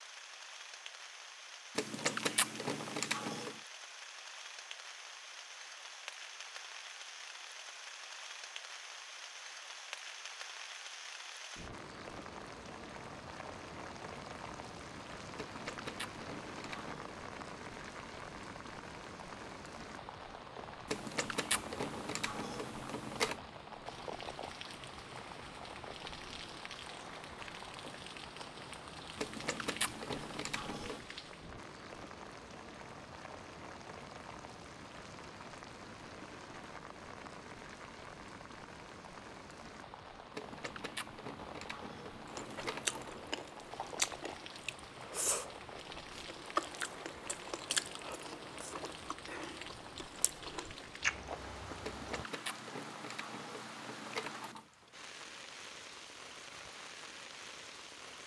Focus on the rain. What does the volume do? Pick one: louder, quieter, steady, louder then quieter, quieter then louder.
steady.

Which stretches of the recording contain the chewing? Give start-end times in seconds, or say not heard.
42.2-52.2.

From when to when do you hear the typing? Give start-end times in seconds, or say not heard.
1.8-3.5, 15.3-17.1, 20.9-23.4, 29.1-31.1, 40.3-43.1, 51.8-54.6.